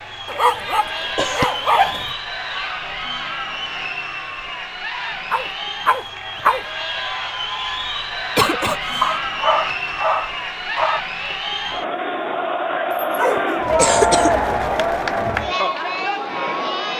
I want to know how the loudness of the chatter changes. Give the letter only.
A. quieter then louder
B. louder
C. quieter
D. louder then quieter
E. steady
B.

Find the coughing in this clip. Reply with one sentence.
You can hear the coughing from 0.8 to 1.5 s, from 8.3 to 9.1 s and from 13.3 to 14.3 s.